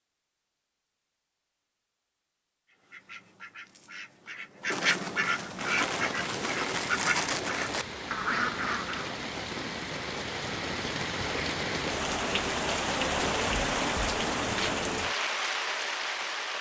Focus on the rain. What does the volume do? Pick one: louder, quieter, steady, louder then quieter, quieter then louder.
louder.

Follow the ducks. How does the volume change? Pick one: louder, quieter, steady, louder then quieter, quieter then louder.
louder.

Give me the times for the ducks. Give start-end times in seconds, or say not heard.
2.7-9.2.